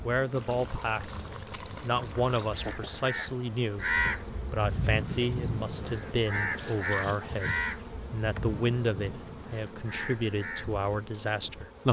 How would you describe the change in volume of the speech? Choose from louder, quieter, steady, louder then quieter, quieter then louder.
steady.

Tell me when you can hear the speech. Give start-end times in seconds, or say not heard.
0.0-11.8.